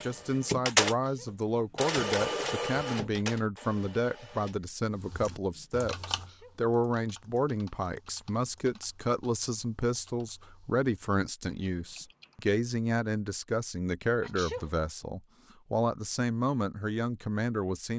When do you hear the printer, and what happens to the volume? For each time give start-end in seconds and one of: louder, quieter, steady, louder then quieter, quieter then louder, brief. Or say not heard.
0.0-5.8 quieter.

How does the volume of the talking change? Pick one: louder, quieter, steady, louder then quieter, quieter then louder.
steady.